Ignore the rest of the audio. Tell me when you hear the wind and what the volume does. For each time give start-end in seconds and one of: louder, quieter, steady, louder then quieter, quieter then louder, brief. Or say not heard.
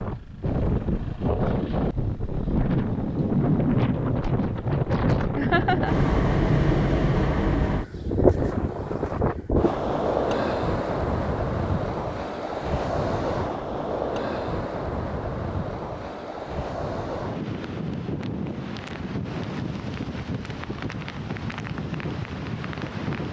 0.0-23.2 quieter.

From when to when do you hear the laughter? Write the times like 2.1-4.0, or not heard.
5.3-6.1.